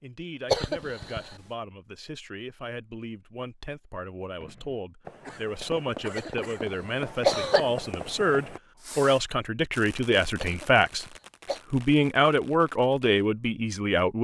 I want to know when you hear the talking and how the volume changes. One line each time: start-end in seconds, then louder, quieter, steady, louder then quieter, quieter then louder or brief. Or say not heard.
0.0-11.1 louder
11.7-14.2 brief.